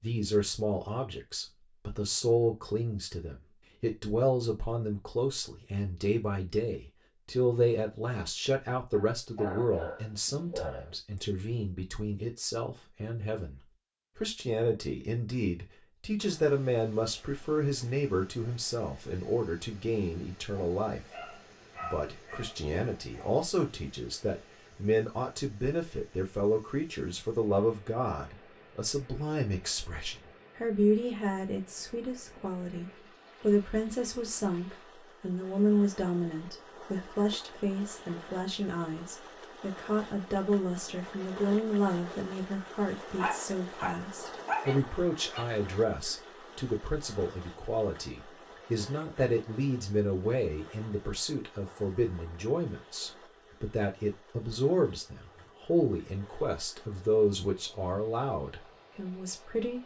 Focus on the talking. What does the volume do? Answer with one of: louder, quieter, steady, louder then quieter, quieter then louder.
steady.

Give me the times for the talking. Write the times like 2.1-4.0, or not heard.
0.0-59.8.